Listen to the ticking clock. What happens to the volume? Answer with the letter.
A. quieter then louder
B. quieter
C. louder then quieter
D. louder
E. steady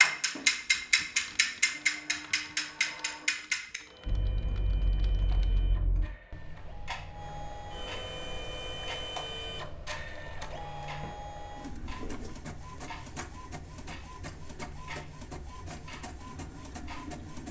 B.